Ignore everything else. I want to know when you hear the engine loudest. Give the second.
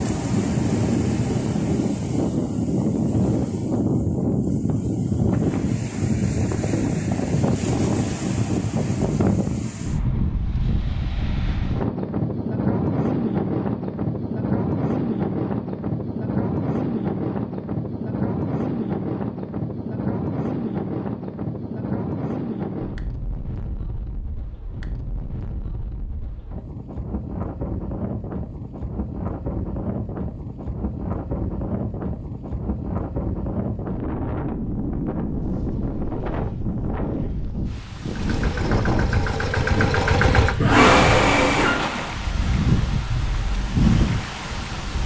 41 s.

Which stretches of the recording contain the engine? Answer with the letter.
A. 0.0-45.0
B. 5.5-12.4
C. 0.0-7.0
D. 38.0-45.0
D.